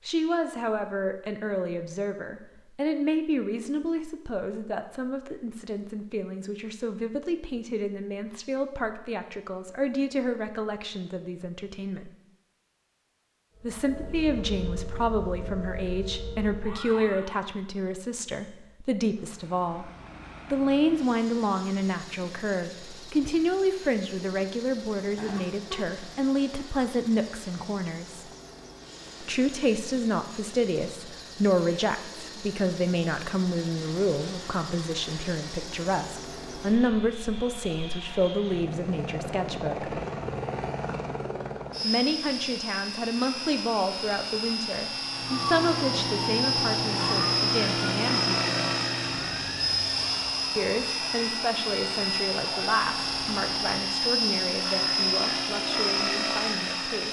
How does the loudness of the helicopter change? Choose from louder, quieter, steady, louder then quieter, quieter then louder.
louder.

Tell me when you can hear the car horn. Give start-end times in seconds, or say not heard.
25.1-26.0.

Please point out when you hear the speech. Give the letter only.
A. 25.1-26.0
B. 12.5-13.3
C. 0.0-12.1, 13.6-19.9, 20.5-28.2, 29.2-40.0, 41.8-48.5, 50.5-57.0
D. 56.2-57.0
C.